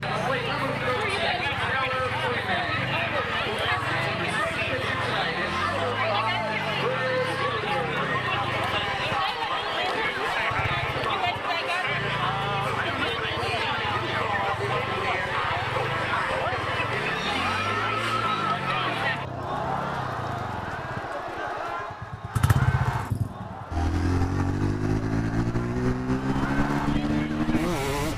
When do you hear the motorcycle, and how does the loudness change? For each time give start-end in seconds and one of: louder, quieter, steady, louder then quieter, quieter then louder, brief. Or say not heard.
0.0-28.1 louder.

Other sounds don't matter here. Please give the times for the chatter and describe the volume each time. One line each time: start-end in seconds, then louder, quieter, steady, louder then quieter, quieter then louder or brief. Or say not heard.
0.0-28.1 quieter.